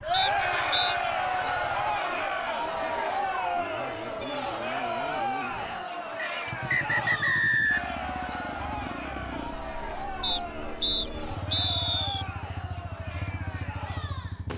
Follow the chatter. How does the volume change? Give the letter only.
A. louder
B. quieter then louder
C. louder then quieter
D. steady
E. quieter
E.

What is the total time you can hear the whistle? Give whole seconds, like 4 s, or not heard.
5 s.